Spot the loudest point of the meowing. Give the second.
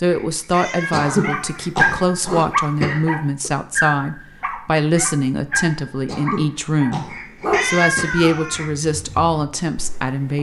8 s.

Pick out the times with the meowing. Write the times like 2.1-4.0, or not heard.
0.1-1.6, 7.1-8.7.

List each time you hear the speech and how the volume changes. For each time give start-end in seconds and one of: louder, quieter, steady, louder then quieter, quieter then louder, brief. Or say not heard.
0.0-10.3 steady.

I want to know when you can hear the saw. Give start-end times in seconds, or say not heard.
not heard.